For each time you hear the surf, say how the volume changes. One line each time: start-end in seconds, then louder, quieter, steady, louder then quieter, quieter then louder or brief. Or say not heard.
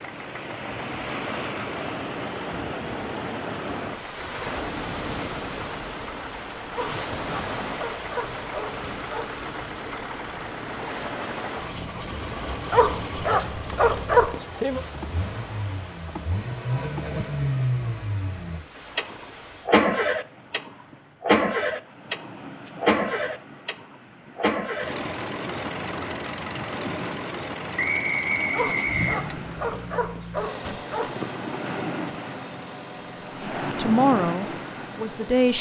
0.0-35.4 quieter then louder.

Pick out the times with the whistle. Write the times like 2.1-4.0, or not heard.
27.8-29.2.